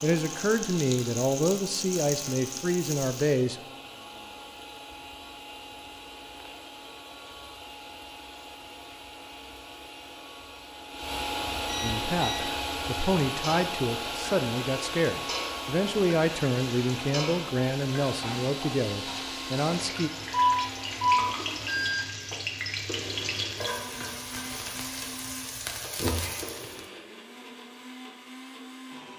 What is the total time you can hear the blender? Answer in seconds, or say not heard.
29 s.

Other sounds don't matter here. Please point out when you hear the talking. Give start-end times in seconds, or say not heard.
0.0-3.6, 11.8-20.1.